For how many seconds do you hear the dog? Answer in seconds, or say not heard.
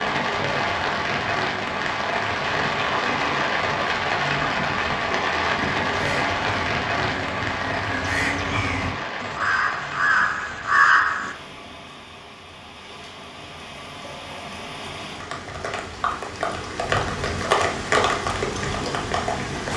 not heard.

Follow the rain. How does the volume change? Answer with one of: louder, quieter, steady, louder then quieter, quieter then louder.
quieter then louder.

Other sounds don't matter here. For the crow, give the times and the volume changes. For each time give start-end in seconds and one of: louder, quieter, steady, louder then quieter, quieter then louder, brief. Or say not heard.
5.8-11.3 louder.